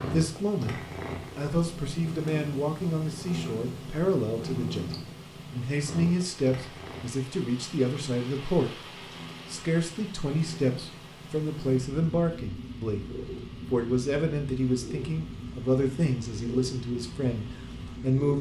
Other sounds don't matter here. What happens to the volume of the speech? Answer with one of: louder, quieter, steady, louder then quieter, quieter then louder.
steady.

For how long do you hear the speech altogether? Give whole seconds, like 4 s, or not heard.
18 s.